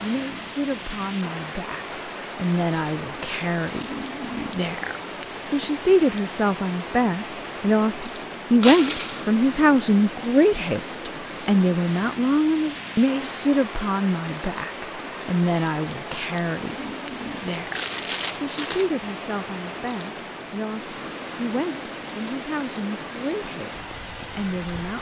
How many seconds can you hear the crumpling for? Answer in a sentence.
You can hear the crumpling for 3 seconds altogether.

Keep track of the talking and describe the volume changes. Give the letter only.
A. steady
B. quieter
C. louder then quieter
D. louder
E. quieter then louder
C.